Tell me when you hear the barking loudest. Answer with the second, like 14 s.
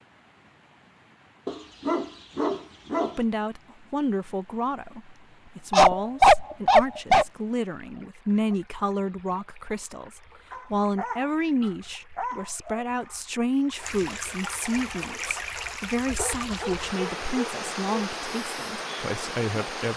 6 s.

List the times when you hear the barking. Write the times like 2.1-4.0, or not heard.
1.4-3.1, 5.7-7.2, 10.5-13.2, 16.1-18.1.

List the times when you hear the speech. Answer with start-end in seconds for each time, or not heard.
3.1-19.9.